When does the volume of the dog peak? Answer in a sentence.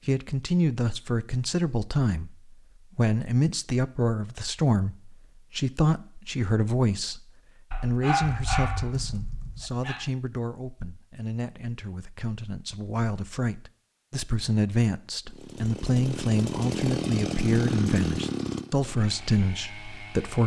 The loudest moment of the dog is at 8 seconds.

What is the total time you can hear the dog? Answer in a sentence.
You can hear the dog for 2 seconds altogether.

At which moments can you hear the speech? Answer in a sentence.
You can hear the speech from 0.1 to 20.4 s.